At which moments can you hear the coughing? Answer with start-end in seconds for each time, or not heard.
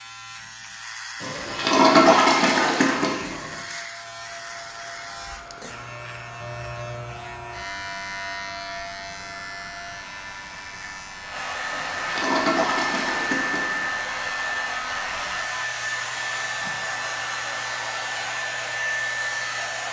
not heard.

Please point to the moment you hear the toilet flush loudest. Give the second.
2 s.